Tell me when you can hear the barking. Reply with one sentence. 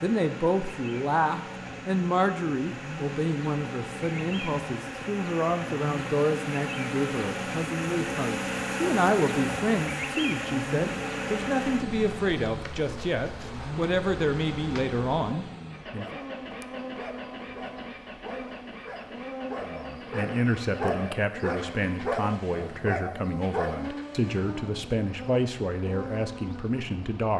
You can hear the barking from 15.9 to 23.9 s.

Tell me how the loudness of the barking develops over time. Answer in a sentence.
The volume of the barking goes up.